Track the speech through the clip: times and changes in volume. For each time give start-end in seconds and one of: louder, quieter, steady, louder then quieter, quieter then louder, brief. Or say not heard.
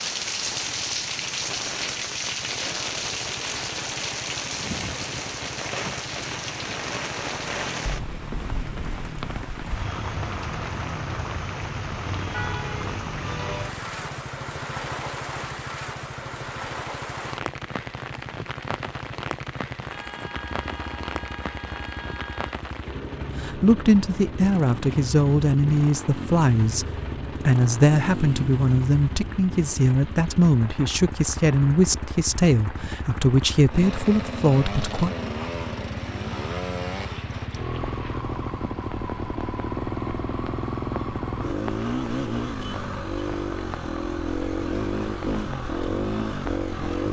23.4-35.1 steady.